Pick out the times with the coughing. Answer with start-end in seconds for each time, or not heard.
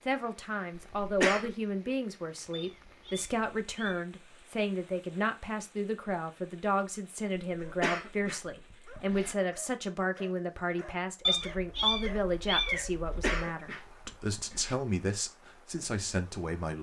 0.8-1.6, 7.6-9.3, 13.0-14.8.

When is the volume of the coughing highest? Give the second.
1 s.